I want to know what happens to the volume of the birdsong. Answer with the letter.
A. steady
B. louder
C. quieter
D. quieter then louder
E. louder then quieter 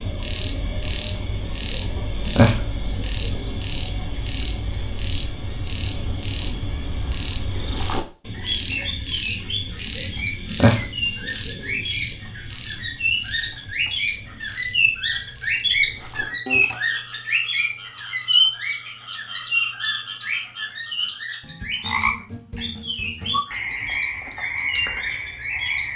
E.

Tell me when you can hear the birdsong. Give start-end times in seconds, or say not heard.
0.0-25.9.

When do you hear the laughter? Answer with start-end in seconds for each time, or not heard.
not heard.